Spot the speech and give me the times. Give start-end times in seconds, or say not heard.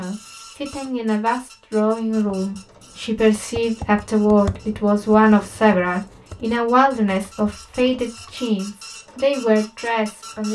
0.0-10.5.